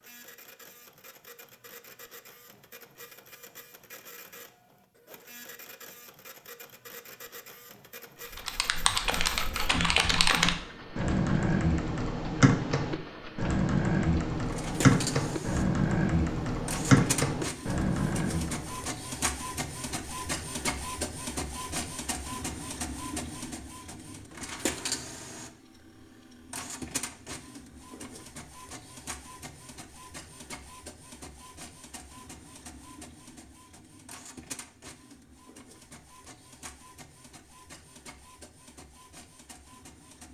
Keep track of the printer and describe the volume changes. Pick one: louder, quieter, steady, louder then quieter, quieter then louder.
louder then quieter.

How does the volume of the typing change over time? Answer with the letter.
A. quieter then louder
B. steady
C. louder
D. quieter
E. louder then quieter
B.